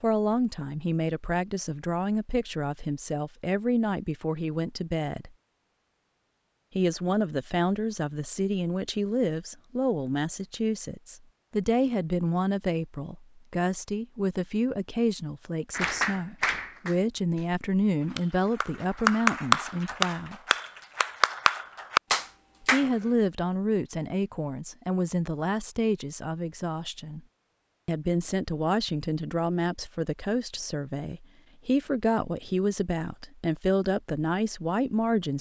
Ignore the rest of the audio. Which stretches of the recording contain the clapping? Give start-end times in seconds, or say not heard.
15.7-22.9.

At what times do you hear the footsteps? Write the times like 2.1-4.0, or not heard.
not heard.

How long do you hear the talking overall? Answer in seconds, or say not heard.
31 s.